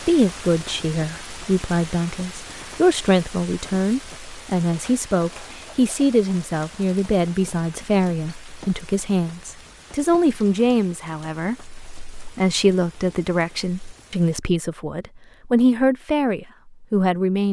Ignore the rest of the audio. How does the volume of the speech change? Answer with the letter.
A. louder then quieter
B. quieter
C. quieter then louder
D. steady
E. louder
D.